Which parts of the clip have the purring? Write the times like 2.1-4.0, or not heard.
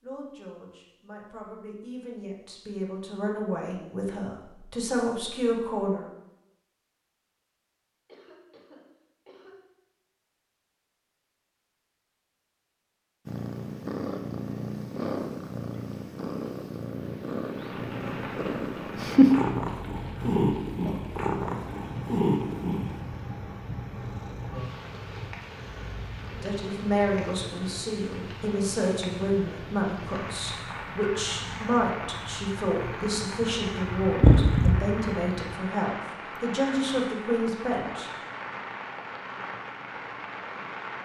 13.2-35.5.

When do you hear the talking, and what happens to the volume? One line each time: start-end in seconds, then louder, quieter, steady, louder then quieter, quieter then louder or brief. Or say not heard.
0.0-6.0 louder
26.4-38.1 steady.